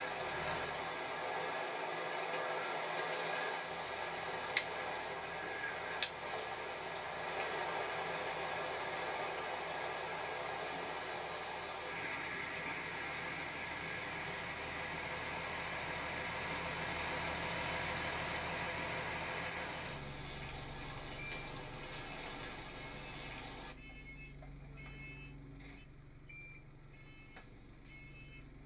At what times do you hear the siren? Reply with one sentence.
The siren can't be heard in this clip.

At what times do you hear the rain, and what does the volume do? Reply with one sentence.
You can hear the rain from 0.0 to 23.8 s, getting quieter.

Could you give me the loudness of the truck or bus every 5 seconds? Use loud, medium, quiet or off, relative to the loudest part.
medium, medium, medium, loud, medium, quiet.